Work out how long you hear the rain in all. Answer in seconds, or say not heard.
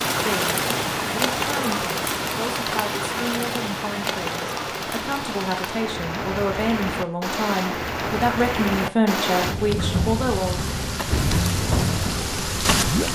13 s.